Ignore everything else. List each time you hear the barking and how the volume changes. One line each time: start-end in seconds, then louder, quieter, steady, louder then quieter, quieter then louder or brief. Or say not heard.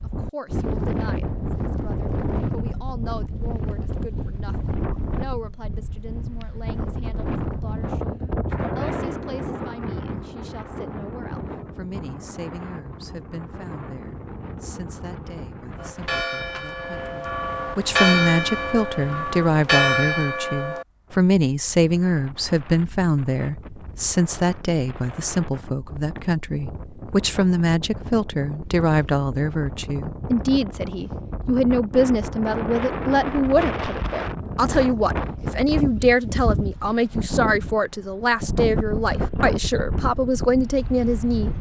not heard.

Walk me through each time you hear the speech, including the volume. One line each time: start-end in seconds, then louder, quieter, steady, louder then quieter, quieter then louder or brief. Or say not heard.
0.0-41.5 louder.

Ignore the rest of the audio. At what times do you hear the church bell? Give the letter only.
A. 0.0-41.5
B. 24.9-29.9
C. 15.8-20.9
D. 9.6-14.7
C.